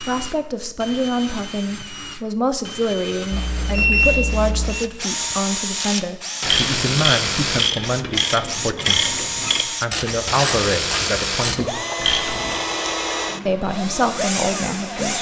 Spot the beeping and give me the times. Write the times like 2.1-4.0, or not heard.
3.3-4.8.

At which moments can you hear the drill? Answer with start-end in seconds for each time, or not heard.
0.0-15.1.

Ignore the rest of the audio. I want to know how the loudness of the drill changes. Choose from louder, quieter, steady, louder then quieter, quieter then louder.
louder.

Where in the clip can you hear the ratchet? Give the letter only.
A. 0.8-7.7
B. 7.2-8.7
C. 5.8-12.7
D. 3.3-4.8
C.